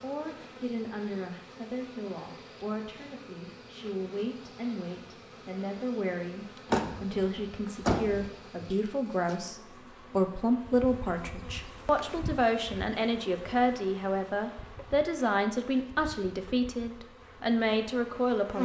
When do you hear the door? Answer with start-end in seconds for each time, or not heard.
6.7-8.3.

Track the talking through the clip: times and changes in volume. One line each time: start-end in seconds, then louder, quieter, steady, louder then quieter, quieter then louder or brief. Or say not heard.
0.0-18.5 louder.